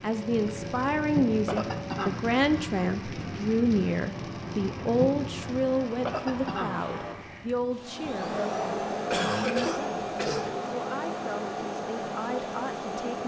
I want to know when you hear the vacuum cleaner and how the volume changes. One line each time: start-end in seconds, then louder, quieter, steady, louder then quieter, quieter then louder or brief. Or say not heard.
0.0-13.2 louder.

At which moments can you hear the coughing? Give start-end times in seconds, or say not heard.
1.4-2.2, 6.0-6.8, 9.1-10.6.